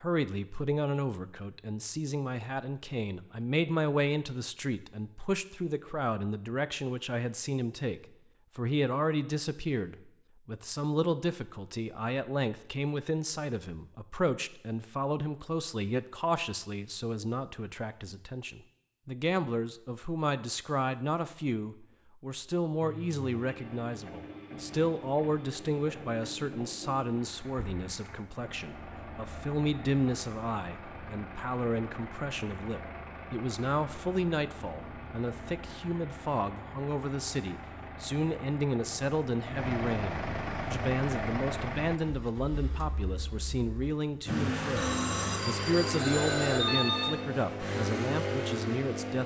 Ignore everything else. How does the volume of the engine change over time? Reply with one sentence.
The loudness of the engine goes up.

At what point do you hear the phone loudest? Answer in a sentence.
The volume of the phone peaks at 47 seconds.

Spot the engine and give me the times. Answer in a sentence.
The engine can be heard from 22.8 to 49.2 s.